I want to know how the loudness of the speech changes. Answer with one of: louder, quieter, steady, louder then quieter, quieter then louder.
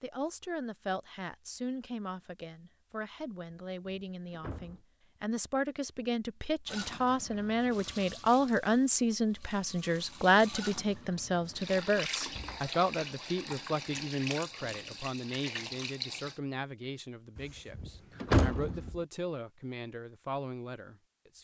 louder then quieter.